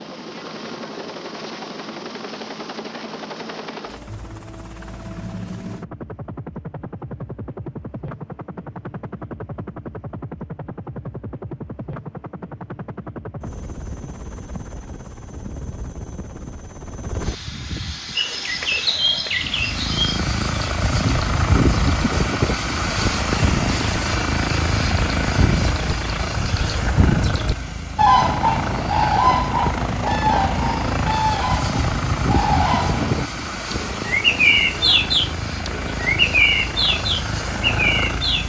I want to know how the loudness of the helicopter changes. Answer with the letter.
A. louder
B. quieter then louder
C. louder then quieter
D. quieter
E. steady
A.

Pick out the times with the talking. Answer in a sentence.
The talking can't be heard in this clip.